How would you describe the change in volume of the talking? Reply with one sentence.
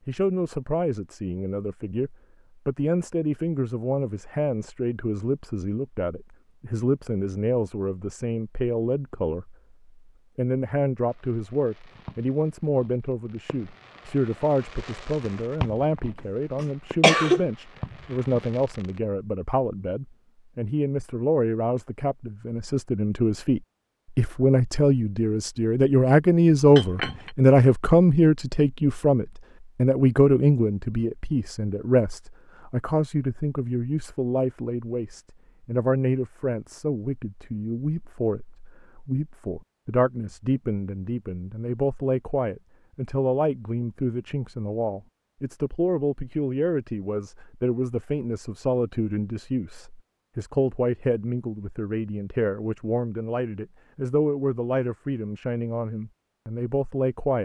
The volume of the talking goes up, then down.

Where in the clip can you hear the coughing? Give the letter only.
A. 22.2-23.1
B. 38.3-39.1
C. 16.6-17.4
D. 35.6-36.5
C.